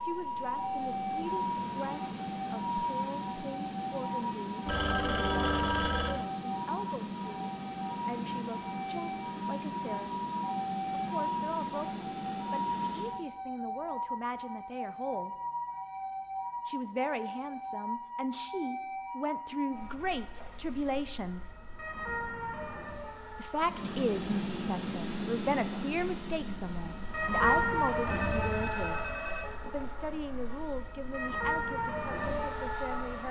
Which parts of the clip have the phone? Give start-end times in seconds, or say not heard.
4.7-6.2, 28.1-29.5.